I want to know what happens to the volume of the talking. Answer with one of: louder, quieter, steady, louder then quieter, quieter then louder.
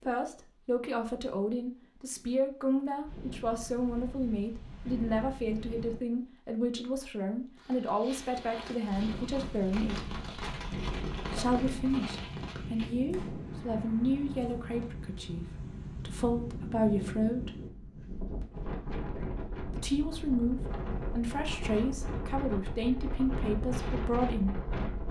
steady.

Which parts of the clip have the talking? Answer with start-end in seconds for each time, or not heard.
0.0-10.1, 11.3-17.6, 19.6-24.6.